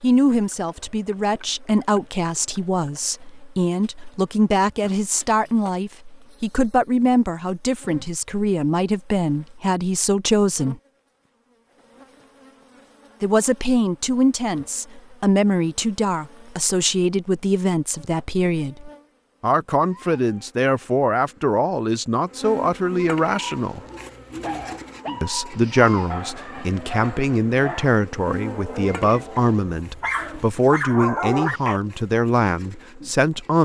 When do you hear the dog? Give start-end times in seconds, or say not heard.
23.3-31.8.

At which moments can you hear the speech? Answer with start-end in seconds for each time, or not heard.
0.0-10.8, 13.2-23.8, 25.2-33.6.